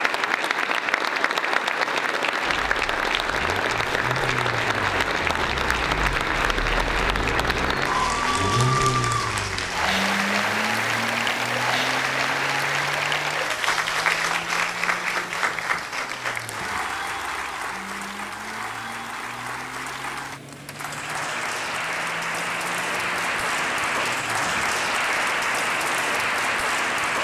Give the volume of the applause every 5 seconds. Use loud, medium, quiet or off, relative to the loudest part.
loud, loud, loud, medium, loud, loud.